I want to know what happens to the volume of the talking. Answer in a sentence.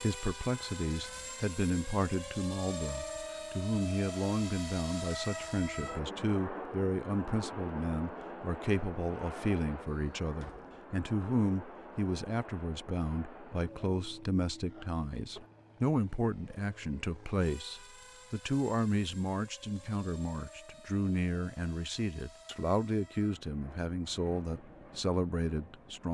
The loudness of the talking stays about the same.